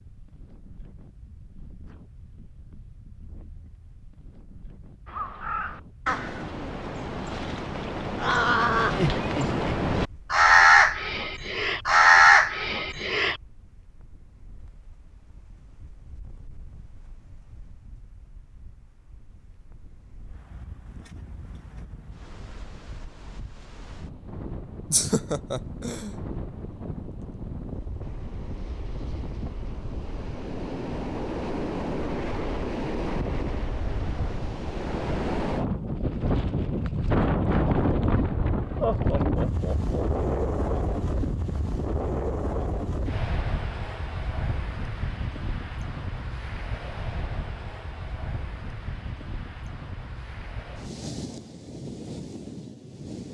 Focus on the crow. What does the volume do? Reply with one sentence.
The volume of the crow goes up.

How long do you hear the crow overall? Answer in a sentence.
You can hear the crow for 8 seconds altogether.